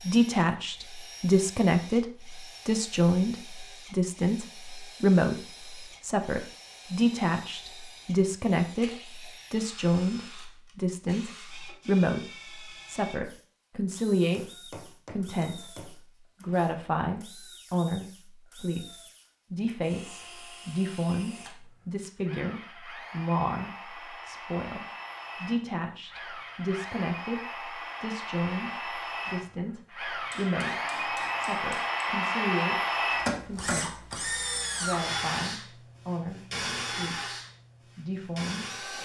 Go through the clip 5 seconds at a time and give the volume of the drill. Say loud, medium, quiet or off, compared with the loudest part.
quiet, quiet, quiet, quiet, quiet, medium, loud, medium.